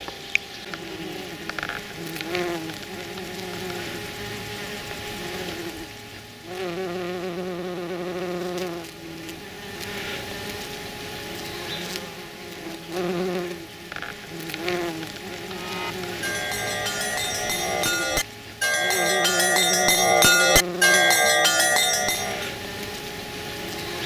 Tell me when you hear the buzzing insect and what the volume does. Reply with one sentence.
You can hear the buzzing insect from 0.0 to 24.0 s, at a steady volume.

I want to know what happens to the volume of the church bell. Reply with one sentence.
The volume of the church bell goes up.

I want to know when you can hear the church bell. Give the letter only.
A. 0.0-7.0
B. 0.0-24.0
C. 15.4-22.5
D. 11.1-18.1
C.